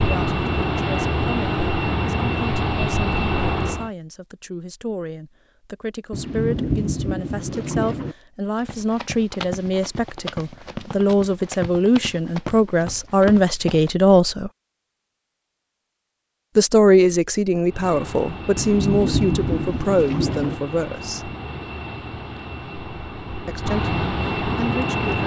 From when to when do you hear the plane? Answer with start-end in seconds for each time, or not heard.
0.0-3.9, 17.6-25.2.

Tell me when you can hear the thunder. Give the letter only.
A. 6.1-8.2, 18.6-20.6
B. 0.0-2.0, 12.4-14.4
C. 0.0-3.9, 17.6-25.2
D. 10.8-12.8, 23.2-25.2
A.